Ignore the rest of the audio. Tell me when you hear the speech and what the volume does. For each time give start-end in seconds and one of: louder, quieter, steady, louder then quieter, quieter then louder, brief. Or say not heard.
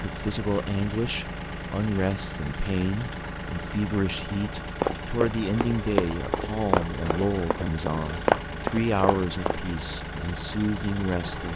0.0-11.5 steady.